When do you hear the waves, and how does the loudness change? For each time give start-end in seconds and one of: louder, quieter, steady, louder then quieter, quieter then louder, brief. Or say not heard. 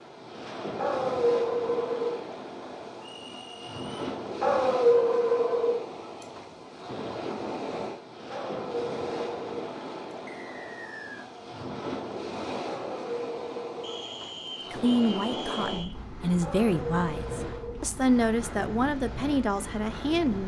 0.0-20.4 steady.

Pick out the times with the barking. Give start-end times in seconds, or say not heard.
0.8-2.2, 4.4-5.8, 8.3-9.7, 12.7-14.1, 16.4-17.8.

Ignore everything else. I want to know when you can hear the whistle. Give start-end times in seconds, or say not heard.
3.1-4.0, 10.2-11.3, 13.8-15.9.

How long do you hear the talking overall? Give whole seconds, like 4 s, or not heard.
6 s.